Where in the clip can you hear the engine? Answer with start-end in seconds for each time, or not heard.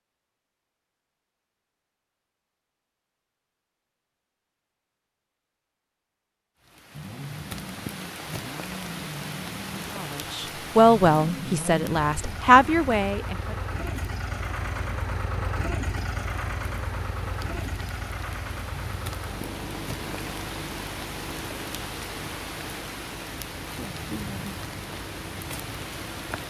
6.9-26.4.